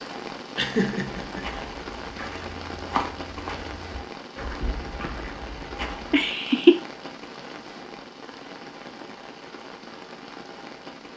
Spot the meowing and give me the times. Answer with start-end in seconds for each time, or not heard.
not heard.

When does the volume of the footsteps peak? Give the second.
3 s.